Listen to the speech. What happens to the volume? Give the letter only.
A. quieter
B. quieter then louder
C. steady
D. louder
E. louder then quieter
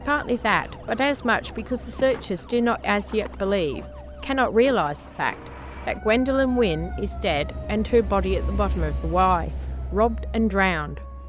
C.